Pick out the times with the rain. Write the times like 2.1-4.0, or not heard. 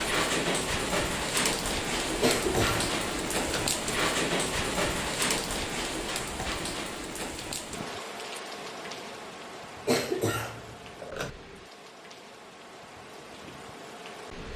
0.0-14.5.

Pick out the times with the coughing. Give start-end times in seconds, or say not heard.
2.2-3.6, 9.8-11.3.